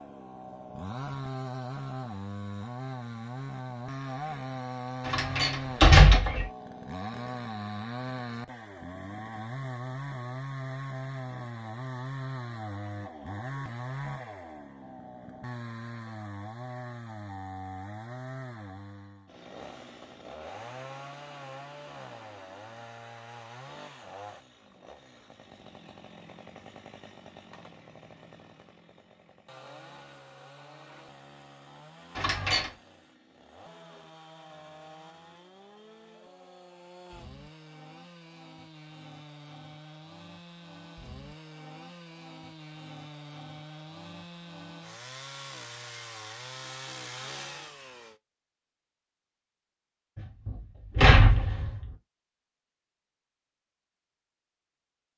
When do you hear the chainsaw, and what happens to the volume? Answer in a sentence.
The chainsaw can be heard from 0.0 to 48.2 s, getting quieter then louder.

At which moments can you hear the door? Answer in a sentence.
The door can be heard from 5.0 to 6.5 s, from 32.1 to 32.7 s and from 50.1 to 51.9 s.